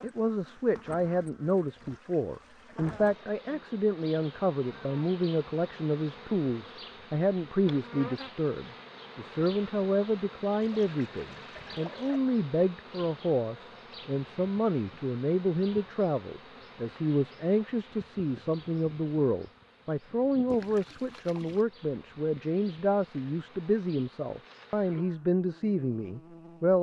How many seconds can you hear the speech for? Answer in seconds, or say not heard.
27 s.